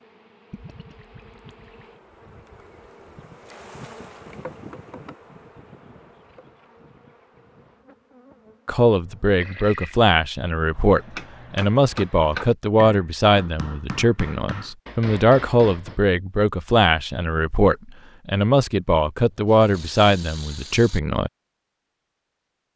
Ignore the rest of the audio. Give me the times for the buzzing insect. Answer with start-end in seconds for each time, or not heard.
0.0-9.4.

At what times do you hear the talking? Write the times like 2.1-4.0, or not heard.
8.7-21.3.